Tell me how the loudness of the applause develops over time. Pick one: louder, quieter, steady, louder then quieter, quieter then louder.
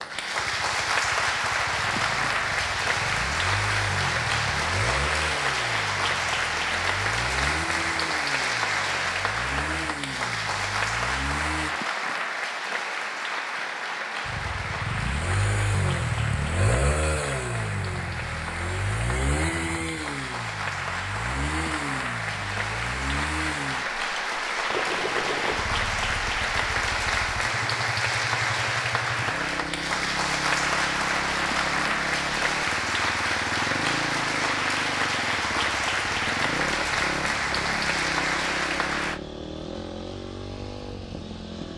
quieter then louder.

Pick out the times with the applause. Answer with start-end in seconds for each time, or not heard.
0.0-39.2.